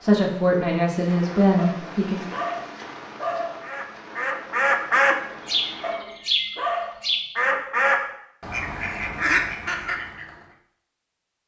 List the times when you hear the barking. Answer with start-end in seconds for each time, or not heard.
1.6-3.6, 5.8-7.0.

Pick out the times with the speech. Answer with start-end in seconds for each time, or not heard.
0.0-2.2.